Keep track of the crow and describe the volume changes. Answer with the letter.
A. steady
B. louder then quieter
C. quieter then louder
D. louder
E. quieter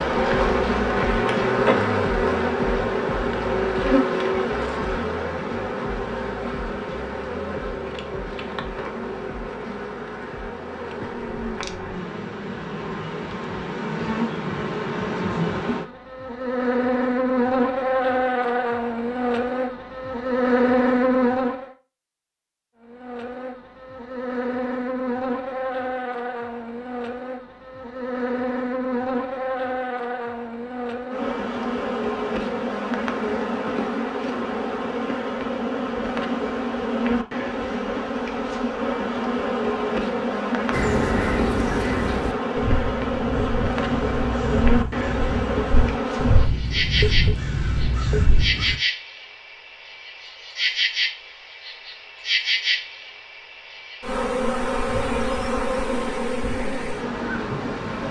C.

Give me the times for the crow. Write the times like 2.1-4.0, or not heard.
40.7-48.8.